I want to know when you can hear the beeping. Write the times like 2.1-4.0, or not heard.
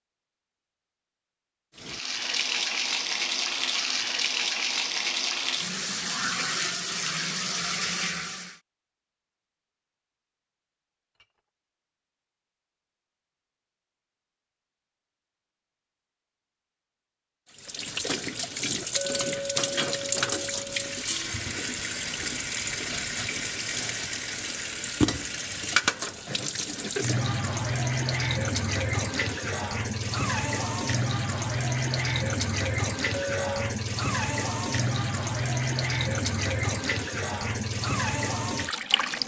not heard.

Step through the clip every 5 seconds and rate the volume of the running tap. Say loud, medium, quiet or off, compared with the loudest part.
loud, loud, off, loud, loud, loud, loud, loud.